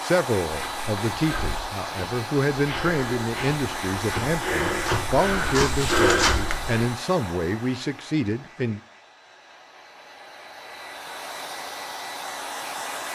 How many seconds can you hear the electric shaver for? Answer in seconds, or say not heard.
not heard.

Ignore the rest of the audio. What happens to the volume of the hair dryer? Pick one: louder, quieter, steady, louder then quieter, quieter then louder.
quieter then louder.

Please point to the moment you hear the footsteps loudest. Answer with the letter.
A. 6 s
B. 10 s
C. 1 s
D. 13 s
A.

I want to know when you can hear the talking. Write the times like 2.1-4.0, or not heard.
0.0-8.8.